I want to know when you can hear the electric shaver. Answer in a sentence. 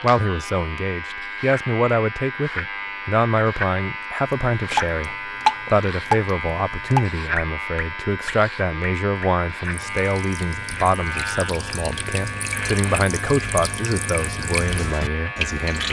The electric shaver can be heard from 0.0 to 15.8 s.